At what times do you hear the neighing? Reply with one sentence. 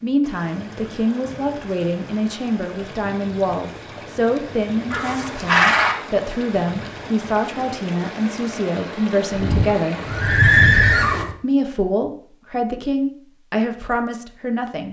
You can hear the neighing from 4.9 to 6.0 s and from 9.3 to 11.3 s.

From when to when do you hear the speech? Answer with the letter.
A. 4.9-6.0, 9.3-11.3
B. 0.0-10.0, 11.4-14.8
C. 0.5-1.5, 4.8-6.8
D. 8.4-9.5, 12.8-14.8
B.